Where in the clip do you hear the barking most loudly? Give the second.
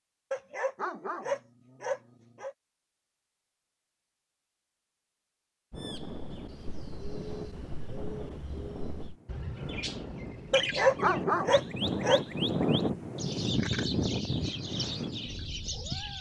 11 s.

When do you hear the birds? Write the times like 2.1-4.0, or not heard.
5.8-16.1.